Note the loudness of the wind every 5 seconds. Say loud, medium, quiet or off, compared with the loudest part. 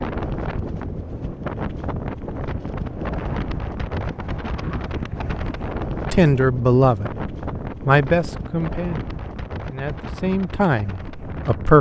loud, loud, medium.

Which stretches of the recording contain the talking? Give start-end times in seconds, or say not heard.
6.1-11.7.